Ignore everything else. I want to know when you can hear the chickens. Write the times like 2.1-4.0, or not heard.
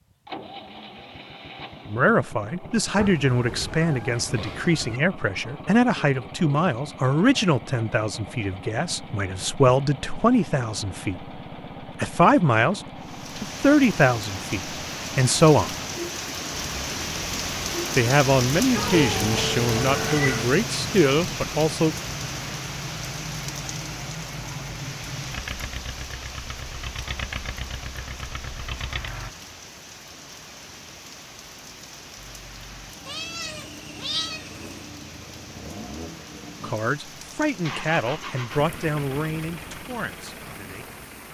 not heard.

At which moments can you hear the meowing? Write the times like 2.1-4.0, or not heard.
3.0-5.0, 18.8-20.5, 33.0-34.9.